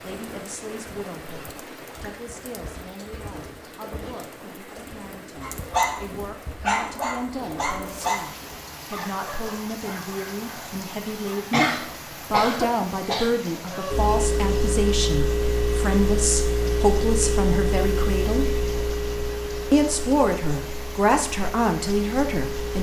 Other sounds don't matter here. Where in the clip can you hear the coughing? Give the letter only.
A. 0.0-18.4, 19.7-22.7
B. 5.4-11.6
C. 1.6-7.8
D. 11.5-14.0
D.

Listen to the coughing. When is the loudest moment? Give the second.
12 s.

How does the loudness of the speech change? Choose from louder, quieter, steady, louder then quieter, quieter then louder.
louder.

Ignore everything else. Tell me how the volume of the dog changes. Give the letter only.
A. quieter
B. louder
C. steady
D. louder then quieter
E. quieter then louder
A.